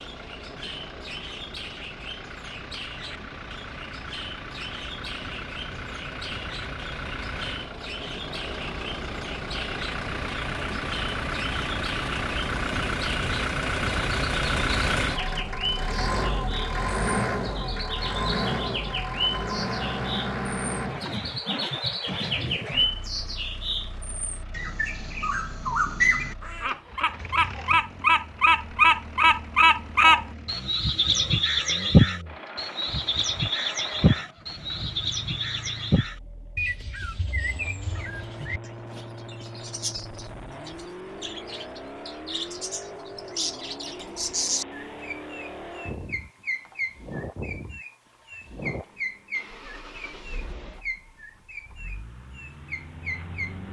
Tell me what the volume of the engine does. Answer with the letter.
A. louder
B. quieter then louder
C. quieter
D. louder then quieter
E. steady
D.